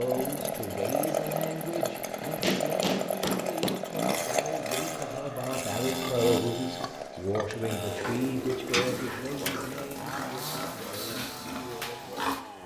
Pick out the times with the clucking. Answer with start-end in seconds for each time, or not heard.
not heard.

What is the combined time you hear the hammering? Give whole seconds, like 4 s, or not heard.
3 s.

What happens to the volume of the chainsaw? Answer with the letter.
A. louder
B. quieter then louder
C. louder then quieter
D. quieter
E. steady
D.